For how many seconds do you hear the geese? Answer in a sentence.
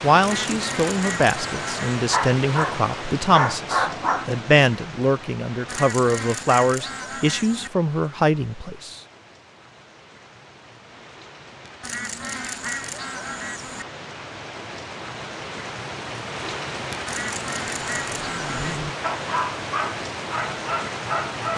You can hear the geese for 8 seconds altogether.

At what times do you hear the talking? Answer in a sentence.
The talking can be heard from 0.0 to 9.0 s.